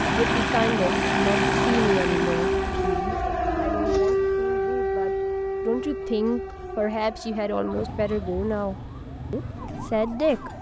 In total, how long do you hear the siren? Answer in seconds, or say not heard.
10 s.